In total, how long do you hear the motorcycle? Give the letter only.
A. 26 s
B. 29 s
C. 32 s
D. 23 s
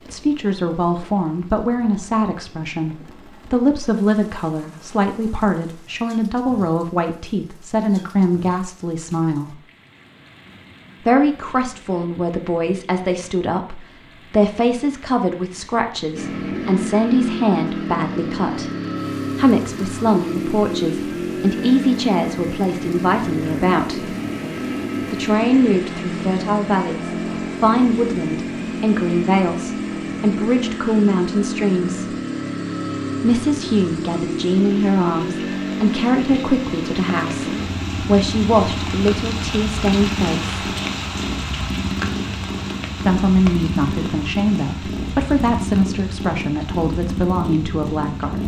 C.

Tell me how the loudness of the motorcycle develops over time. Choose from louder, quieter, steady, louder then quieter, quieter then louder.
steady.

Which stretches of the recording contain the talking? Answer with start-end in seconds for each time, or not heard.
0.1-9.6, 11.0-18.7, 19.4-24.1, 25.1-32.1, 33.2-40.5, 43.0-48.4.